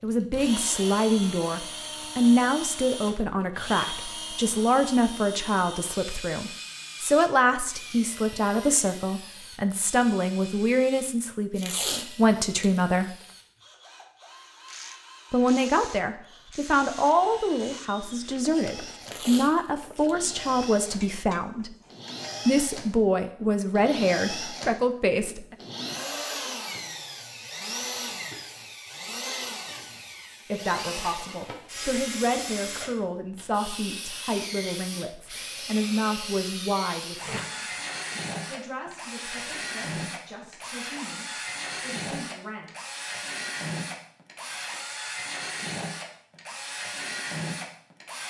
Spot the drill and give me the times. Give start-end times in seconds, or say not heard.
0.1-48.2.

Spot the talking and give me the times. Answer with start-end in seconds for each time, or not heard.
0.0-13.2, 15.3-21.7, 22.4-25.6, 30.5-37.8, 38.5-42.8.